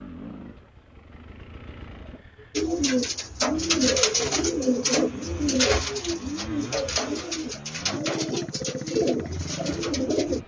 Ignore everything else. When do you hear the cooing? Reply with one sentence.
You can hear the cooing from 2.5 to 10.4 s.